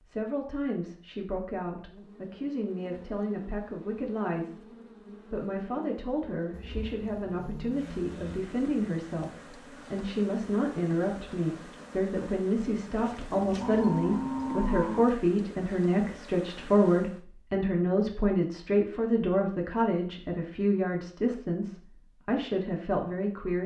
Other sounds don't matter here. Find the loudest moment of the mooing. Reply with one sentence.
The loudest moment of the mooing is at 15 seconds.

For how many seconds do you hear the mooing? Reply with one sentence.
You can hear the mooing for 4 seconds altogether.